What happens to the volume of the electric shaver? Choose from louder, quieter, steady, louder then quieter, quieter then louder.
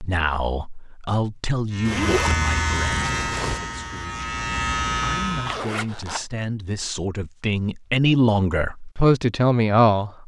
quieter then louder.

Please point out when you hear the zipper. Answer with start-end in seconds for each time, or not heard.
1.9-3.6, 5.5-6.2.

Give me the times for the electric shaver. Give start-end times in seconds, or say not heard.
1.7-5.7.